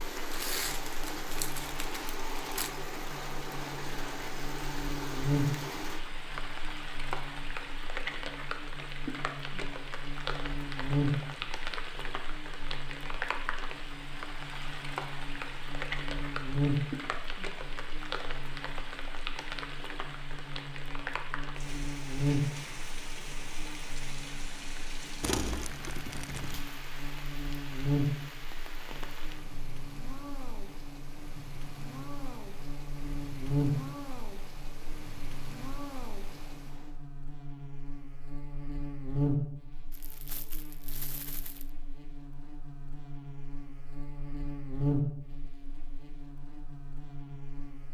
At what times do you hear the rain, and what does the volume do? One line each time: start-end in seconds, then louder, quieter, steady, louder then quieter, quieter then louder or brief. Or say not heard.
0.0-37.0 quieter.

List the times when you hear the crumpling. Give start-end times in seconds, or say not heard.
0.3-2.8, 25.2-26.6, 39.9-41.7.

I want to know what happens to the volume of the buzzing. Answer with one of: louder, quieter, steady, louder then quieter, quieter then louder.
steady.